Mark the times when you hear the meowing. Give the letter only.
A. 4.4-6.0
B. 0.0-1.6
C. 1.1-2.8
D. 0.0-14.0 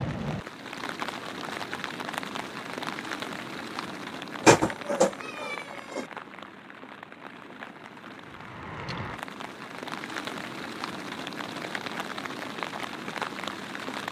A.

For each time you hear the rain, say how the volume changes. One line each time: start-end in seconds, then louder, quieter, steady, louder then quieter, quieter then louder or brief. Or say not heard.
0.0-14.0 quieter then louder.